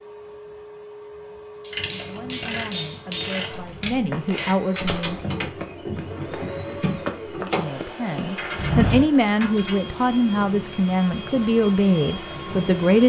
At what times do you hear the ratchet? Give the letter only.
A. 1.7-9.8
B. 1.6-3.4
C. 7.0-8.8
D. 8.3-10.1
A.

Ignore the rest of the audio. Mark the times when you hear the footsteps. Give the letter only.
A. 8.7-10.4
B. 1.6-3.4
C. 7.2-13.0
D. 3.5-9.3
D.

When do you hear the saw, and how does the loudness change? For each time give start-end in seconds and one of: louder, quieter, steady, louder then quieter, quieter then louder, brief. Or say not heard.
not heard.